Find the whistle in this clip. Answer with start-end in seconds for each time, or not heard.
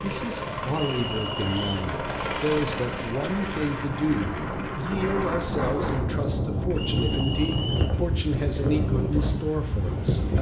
0.7-1.9, 6.8-8.0.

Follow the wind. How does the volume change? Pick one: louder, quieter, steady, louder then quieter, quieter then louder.
louder.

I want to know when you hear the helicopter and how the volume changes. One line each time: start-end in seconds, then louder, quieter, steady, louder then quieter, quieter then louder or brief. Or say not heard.
0.0-4.8 quieter.